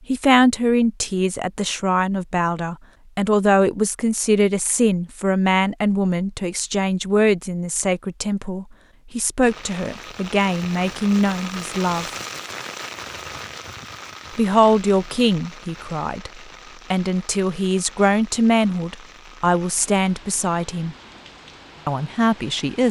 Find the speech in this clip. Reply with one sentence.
The speech can be heard from 0.1 to 12.1 s, from 14.3 to 20.9 s and from 21.9 to 22.8 s.